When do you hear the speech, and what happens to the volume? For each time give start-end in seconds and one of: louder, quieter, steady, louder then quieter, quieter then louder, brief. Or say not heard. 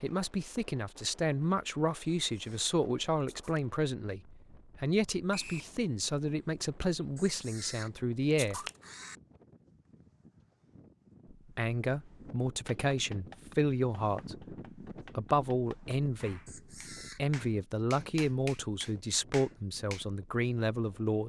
0.0-8.6 steady
11.6-21.2 steady.